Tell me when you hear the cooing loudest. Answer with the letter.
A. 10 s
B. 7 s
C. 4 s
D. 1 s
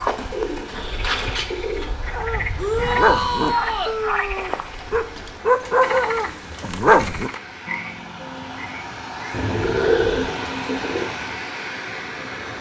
A.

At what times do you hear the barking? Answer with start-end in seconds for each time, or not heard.
2.1-7.3.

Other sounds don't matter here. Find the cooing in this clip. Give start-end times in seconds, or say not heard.
0.1-1.9, 4.7-6.8, 9.3-11.1.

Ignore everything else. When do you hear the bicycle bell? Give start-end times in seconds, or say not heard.
not heard.